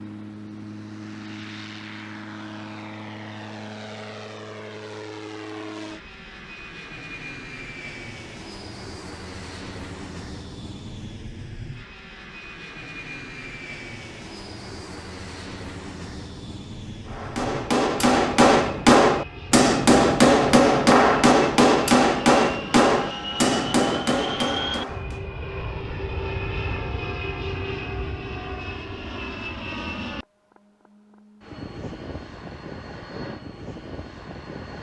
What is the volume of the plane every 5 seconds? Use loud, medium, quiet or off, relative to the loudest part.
medium, medium, medium, medium, loud, loud, medium.